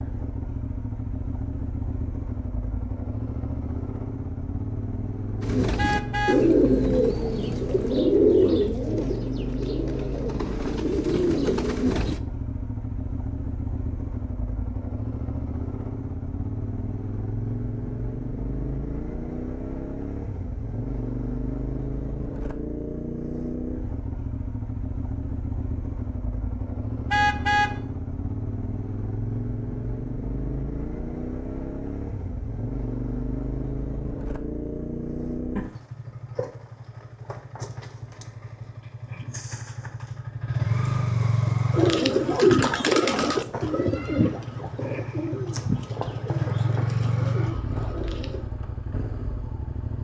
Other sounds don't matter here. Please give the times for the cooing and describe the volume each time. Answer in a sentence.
You can hear the cooing from 5.4 to 12.2 s, getting quieter then louder; and from 41.7 to 48.5 s, getting quieter.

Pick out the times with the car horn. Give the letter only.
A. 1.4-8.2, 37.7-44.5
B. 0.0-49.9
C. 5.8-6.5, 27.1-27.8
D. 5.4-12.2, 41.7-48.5
C.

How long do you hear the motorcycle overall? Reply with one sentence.
You can hear the motorcycle for 50 seconds altogether.